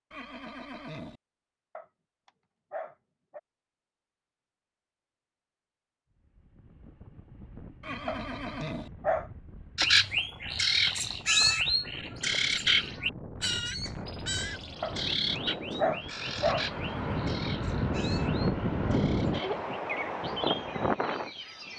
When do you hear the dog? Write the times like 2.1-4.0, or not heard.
1.8-3.4, 8.1-9.3, 14.8-16.6.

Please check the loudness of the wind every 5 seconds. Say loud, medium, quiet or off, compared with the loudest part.
off, quiet, quiet, loud, loud.